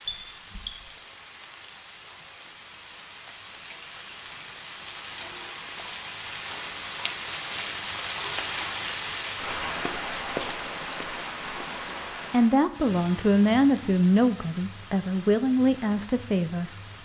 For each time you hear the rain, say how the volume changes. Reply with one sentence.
The rain can be heard from 0.0 to 16.9 s, getting louder then quieter.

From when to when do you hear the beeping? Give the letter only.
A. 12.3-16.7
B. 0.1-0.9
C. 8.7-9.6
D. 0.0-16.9
B.